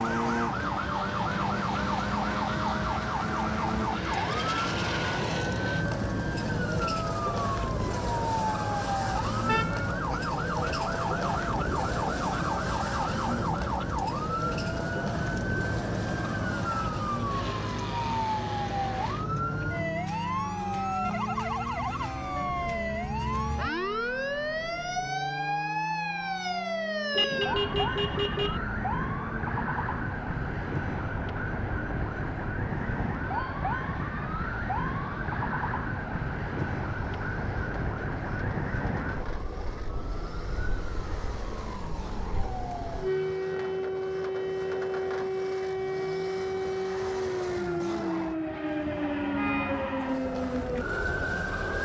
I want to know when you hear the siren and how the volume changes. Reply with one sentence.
The siren can be heard from 0.0 to 51.8 s, at a steady volume.